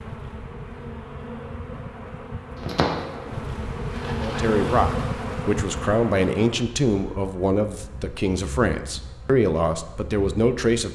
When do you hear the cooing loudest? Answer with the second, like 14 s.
3 s.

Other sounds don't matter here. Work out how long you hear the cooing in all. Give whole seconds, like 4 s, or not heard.
2 s.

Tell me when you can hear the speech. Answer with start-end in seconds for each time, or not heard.
4.2-10.9.